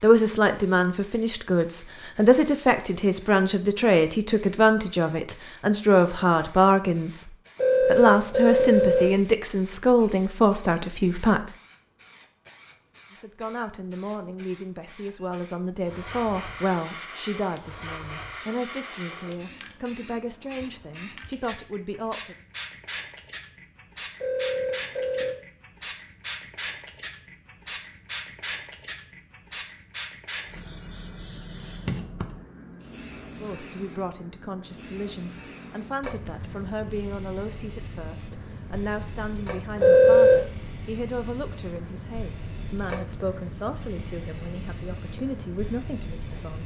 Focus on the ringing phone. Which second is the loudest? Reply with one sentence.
The volume of the ringing phone peaks at 40 seconds.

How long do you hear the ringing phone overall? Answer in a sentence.
The ringing phone can be heard for 3 seconds in total.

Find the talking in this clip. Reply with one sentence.
The talking can be heard from 0.0 to 11.5 s, from 13.1 to 22.4 s and from 33.4 to 46.6 s.